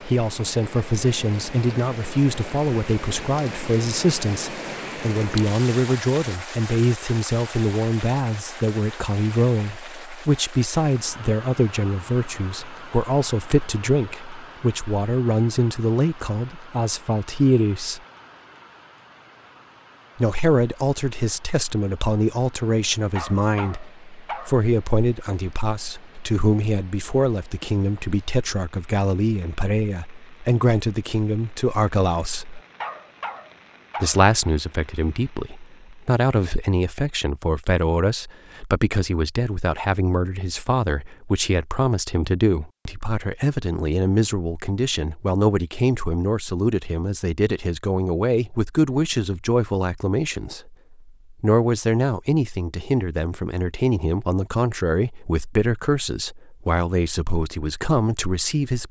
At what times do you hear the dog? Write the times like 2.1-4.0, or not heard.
23.1-24.6, 32.5-34.2.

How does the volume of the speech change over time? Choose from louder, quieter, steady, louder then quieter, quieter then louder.
steady.